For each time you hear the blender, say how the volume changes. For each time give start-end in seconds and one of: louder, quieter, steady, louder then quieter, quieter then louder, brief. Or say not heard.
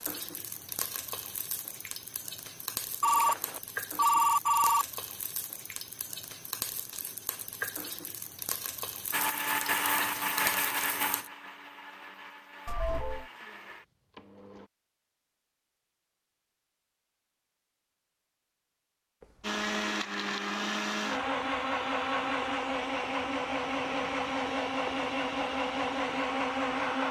9.1-14.7 quieter
19.4-27.0 steady.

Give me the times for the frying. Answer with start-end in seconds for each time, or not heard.
0.0-11.3.